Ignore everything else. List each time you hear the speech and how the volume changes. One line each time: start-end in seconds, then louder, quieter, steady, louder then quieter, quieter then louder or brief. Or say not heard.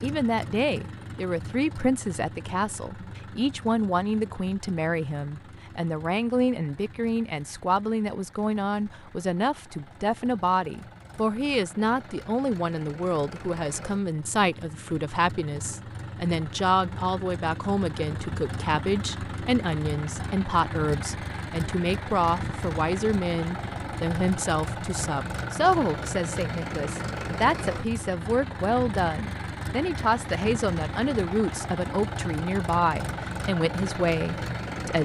0.0-35.0 steady.